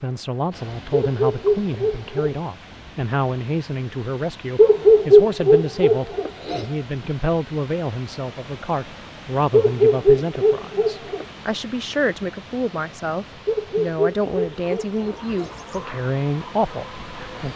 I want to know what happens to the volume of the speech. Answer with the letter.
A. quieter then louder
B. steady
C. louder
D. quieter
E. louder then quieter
B.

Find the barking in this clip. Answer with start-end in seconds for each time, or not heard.
0.9-2.4, 4.5-6.7, 9.5-11.2, 13.4-15.6.